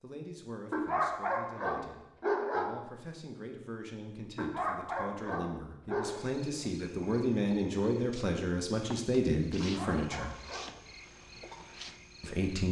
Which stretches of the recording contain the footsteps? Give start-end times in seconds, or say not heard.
not heard.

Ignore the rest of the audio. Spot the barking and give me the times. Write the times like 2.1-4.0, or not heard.
0.7-2.7, 4.3-6.2, 9.6-10.7.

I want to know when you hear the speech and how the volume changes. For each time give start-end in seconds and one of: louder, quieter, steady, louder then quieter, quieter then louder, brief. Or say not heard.
0.0-10.3 louder
12.2-12.6 brief.